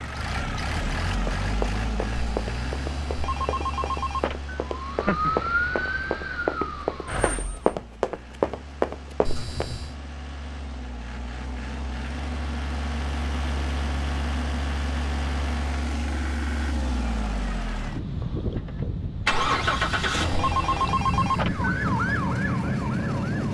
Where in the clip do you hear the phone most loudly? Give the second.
21 s.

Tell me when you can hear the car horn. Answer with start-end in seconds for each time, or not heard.
not heard.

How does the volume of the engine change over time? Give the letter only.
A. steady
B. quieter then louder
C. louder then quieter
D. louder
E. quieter
B.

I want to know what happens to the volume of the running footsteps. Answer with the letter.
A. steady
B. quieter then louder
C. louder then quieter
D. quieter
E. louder
E.